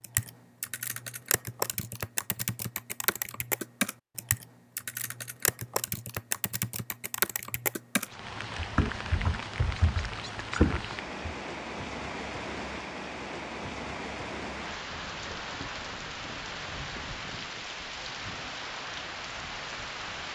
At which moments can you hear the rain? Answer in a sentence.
You can hear the rain from 8.0 to 20.2 s.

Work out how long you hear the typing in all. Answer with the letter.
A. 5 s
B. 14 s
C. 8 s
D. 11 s
D.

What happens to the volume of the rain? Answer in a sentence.
The loudness of the rain stays about the same.